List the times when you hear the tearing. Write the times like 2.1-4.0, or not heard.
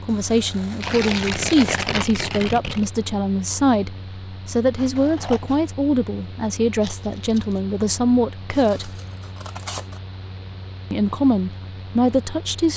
0.8-2.9, 6.8-7.6.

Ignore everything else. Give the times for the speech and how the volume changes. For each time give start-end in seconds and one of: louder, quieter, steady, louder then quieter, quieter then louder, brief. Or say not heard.
0.0-8.9 steady
10.9-12.7 brief.